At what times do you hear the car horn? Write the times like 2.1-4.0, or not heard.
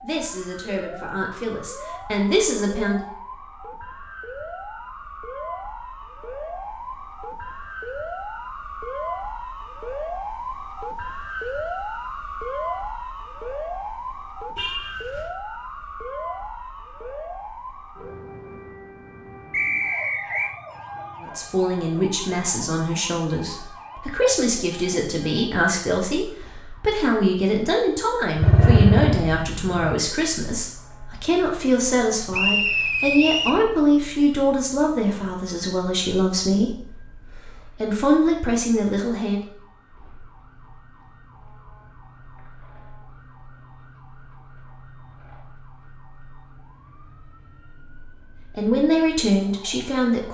14.6-15.3.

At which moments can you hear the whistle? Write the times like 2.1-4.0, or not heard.
19.5-20.6, 32.3-33.6.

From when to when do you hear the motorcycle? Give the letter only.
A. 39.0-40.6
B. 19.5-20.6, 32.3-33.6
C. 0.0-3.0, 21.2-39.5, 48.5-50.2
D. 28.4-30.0
D.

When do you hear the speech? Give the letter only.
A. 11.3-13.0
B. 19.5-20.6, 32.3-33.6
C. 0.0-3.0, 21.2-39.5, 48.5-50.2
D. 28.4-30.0
C.